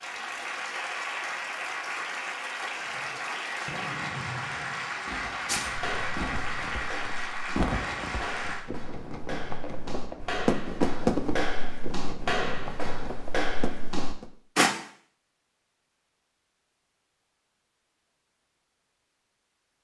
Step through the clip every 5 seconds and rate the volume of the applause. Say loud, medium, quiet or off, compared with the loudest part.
loud, loud, off, off.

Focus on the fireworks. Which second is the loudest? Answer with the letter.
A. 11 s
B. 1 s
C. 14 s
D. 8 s
A.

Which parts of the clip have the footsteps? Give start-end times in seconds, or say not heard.
5.5-14.7.